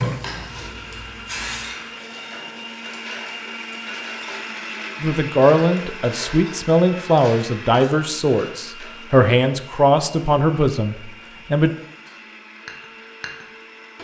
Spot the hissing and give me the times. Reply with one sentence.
You can hear the hissing from 0.0 to 1.8 s.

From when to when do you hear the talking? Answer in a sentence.
You can hear the talking from 5.0 to 11.7 s.